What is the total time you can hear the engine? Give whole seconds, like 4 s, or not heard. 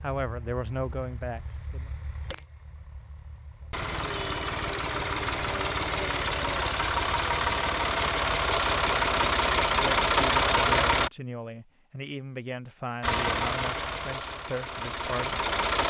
14 s.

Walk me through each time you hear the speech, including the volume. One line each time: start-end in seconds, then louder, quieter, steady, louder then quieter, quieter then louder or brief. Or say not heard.
0.0-1.9 brief
9.8-15.4 steady.